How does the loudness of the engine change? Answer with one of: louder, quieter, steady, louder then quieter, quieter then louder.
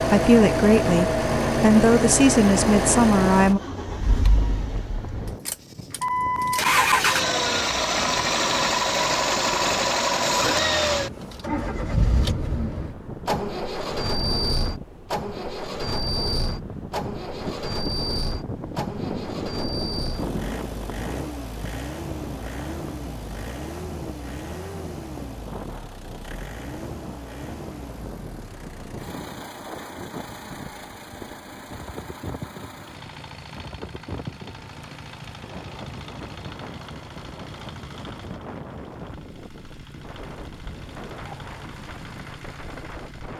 quieter.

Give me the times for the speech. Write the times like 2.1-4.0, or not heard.
0.1-3.6.